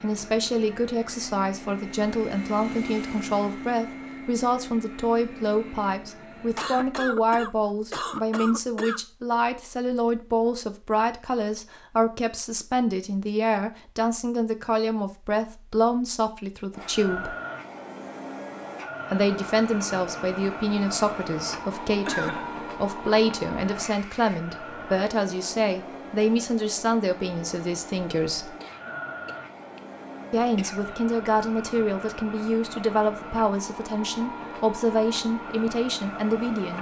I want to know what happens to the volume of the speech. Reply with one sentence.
The volume of the speech stays about the same.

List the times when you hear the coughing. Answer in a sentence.
The coughing can be heard from 6.5 to 9.0 s, from 22.1 to 22.6 s and from 28.6 to 31.0 s.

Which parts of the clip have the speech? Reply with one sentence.
You can hear the speech from 0.0 to 17.4 s, from 19.1 to 28.6 s and from 30.3 to 36.7 s.